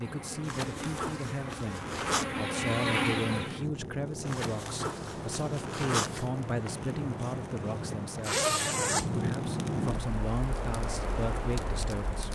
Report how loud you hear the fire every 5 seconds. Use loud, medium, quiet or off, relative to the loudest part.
medium, loud, medium.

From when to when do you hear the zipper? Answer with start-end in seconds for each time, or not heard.
0.4-2.2, 4.2-6.3, 8.2-9.2.